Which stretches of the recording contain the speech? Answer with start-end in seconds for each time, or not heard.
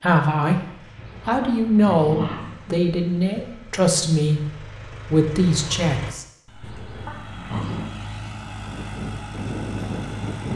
0.0-0.6, 1.2-6.2.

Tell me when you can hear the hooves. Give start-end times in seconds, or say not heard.
8.7-10.5.